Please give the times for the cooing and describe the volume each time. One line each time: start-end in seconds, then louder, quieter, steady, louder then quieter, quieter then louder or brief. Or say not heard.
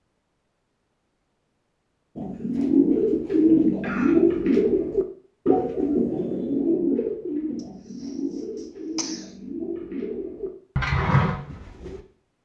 2.1-12.0 quieter then louder.